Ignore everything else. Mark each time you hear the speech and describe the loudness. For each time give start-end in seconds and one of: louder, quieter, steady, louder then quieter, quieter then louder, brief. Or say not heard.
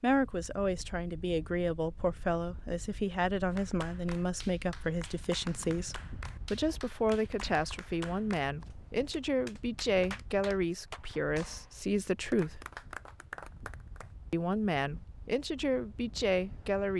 0.0-12.7 steady
14.3-16.9 brief.